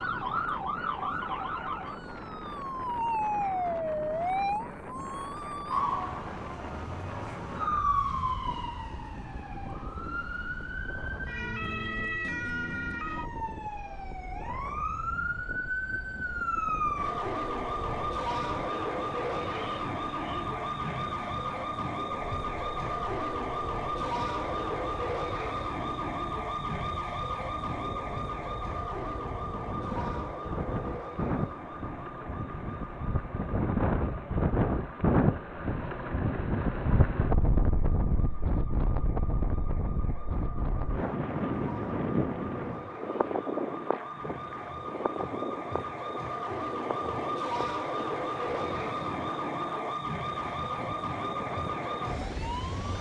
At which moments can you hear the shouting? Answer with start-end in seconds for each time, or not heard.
not heard.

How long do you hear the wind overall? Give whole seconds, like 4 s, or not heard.
53 s.